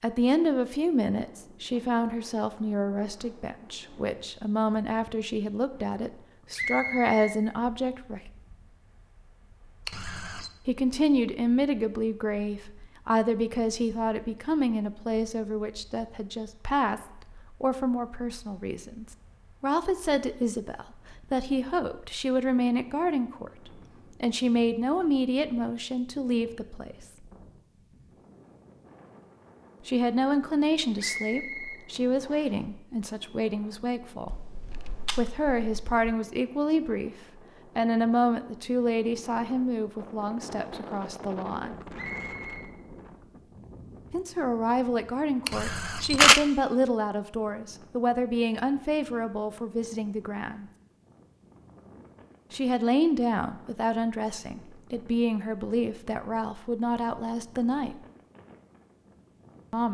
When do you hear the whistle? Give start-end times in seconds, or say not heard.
6.5-7.3, 30.9-32.5, 42.0-42.6.